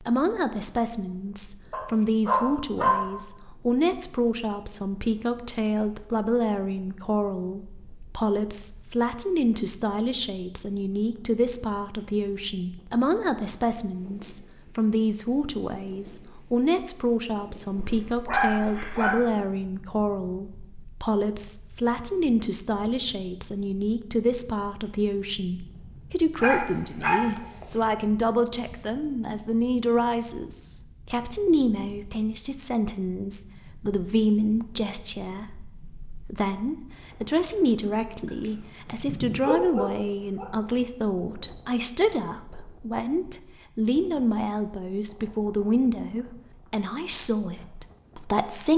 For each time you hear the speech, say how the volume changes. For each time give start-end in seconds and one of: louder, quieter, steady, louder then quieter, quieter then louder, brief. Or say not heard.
0.0-48.7 steady.